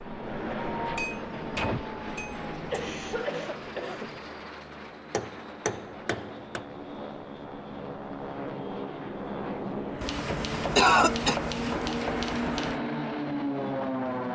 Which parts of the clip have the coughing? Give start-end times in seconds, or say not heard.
2.7-4.2, 10.8-11.4.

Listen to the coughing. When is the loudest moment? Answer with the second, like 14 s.
11 s.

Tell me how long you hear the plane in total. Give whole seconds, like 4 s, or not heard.
14 s.